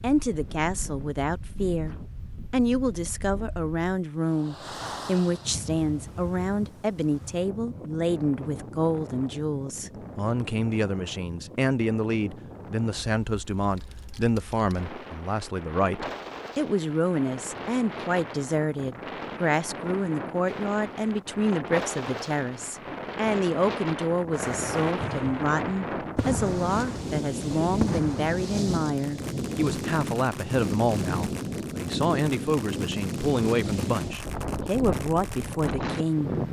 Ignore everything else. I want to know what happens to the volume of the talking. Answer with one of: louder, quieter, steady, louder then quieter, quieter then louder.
steady.